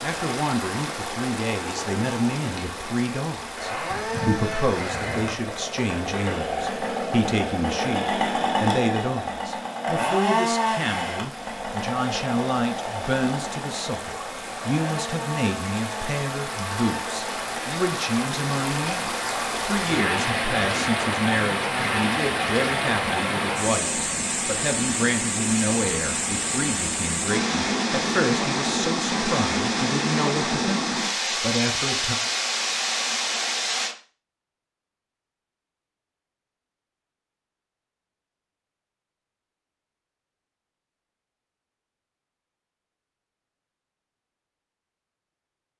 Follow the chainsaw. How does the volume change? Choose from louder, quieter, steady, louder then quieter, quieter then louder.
louder then quieter.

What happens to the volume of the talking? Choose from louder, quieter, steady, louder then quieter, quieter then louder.
steady.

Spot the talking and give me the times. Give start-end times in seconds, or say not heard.
0.0-32.1.